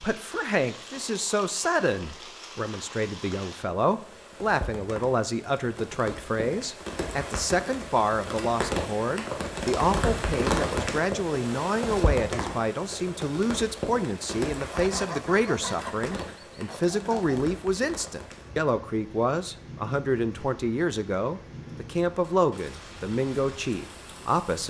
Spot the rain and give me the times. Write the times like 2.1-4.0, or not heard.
0.0-24.6.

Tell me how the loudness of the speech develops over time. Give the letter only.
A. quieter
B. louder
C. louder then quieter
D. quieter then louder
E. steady
E.